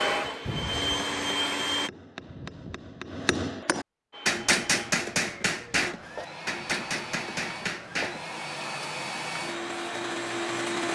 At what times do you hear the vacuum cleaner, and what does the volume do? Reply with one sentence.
The vacuum cleaner can be heard briefly from 0.0 to 1.9 s; and from 4.1 to 10.8 s, getting louder.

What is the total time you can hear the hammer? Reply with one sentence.
The hammer can be heard for 8 seconds in total.